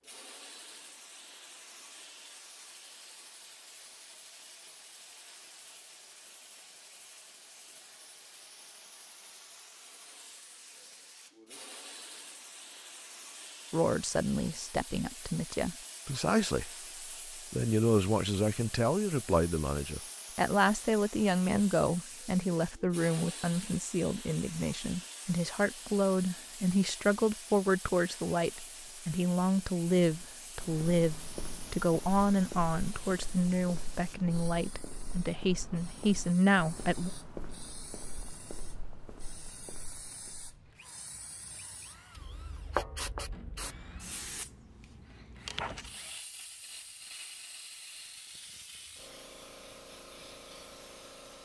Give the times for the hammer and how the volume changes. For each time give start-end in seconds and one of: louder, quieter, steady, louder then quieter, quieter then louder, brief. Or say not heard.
not heard.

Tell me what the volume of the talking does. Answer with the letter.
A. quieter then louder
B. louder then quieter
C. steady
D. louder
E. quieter
C.